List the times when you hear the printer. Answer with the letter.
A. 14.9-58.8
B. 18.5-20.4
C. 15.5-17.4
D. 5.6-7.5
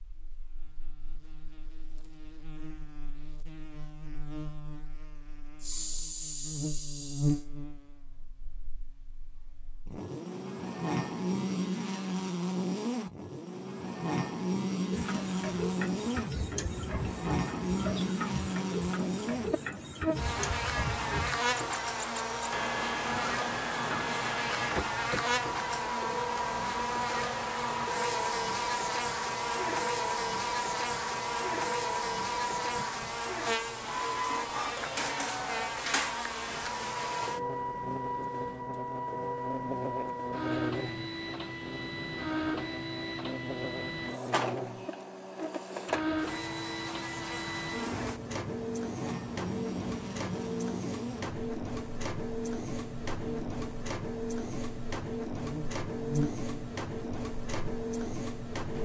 A.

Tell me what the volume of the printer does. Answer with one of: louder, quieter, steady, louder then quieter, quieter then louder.
steady.